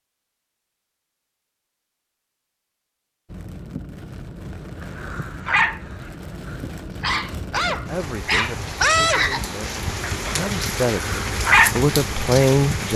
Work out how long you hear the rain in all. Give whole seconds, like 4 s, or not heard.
10 s.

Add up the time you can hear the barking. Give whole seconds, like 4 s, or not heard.
7 s.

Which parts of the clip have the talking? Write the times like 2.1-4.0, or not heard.
7.7-12.9.